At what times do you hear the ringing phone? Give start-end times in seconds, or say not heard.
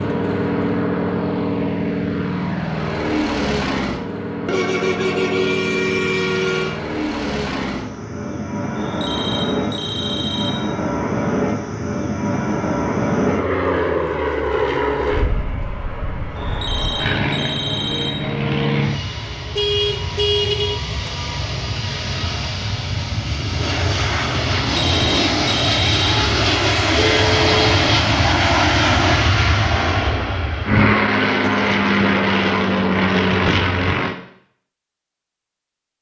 8.8-10.5, 16.4-18.1, 24.5-26.2.